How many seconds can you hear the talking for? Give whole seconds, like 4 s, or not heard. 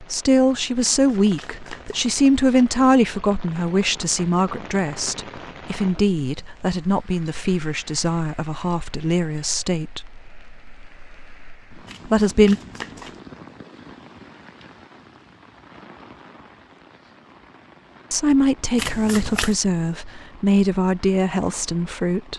15 s.